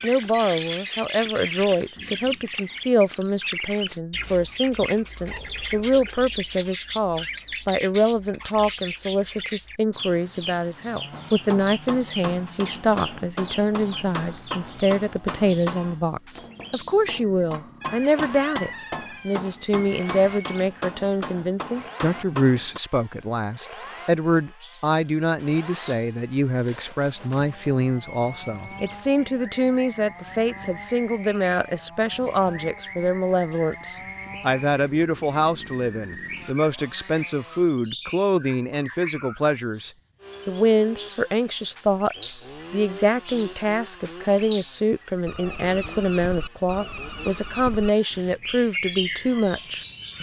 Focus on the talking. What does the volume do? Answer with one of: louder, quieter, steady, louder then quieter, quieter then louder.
steady.